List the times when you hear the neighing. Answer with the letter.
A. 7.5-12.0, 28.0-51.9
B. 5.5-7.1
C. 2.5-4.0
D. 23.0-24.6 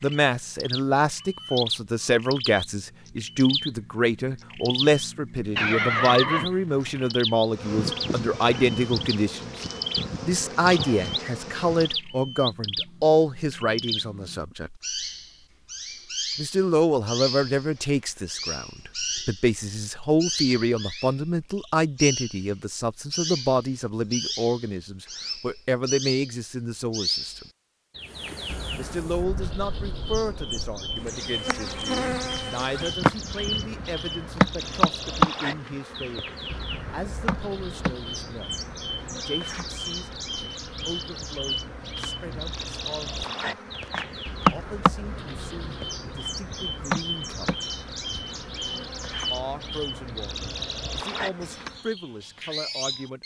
B.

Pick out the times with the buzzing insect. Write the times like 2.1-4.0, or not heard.
7.5-12.0, 28.0-51.9.